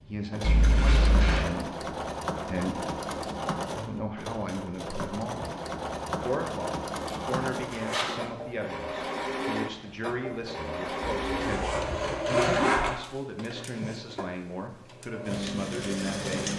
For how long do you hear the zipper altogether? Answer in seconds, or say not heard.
4 s.